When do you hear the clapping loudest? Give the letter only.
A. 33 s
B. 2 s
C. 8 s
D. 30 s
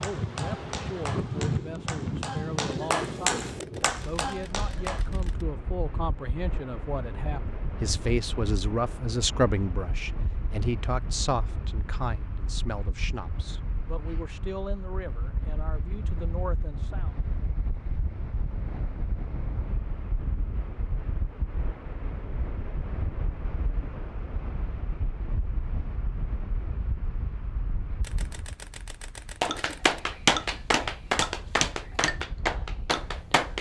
D.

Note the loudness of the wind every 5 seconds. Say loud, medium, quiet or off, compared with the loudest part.
loud, medium, medium, medium, medium, medium, quiet.